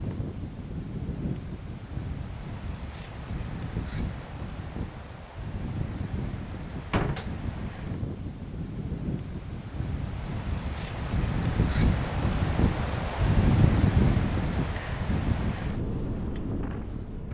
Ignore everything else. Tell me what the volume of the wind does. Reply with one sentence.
The volume of the wind goes up.